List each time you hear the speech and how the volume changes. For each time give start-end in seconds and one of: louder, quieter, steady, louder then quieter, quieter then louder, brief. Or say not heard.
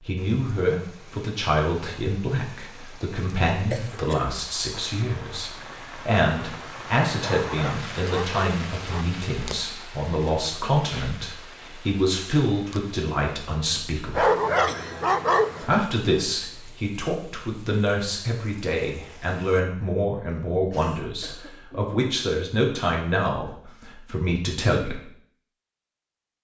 0.0-14.2 steady
15.6-25.0 steady.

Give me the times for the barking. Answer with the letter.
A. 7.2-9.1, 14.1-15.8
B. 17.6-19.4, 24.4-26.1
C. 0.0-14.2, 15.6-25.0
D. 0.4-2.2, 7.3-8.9
A.